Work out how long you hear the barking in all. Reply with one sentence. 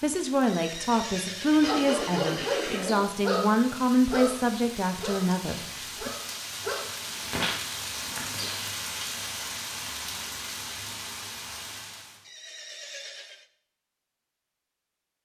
You can hear the barking for 7 seconds altogether.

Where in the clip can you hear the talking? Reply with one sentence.
You can hear the talking from 0.0 to 6.1 s.